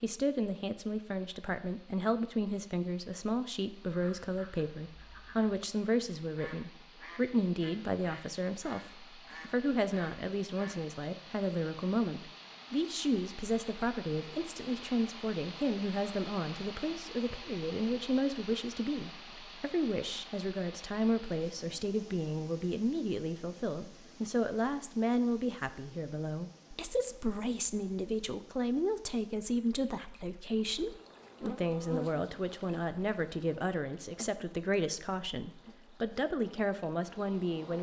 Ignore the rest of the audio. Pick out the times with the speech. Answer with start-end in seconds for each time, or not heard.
0.0-37.7.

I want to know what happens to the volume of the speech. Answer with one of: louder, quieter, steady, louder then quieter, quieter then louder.
steady.